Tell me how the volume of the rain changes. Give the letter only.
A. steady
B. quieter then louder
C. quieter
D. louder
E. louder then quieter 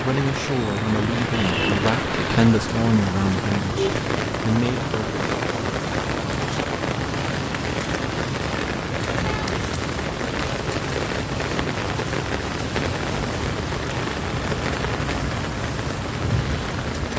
A.